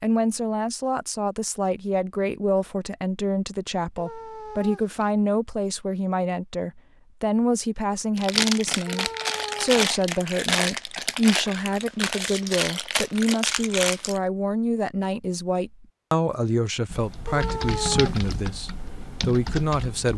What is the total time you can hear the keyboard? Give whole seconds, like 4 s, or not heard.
3 s.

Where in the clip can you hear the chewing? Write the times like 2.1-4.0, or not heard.
8.2-14.2.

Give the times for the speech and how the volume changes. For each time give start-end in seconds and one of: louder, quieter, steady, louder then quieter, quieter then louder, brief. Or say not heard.
0.0-20.1 steady.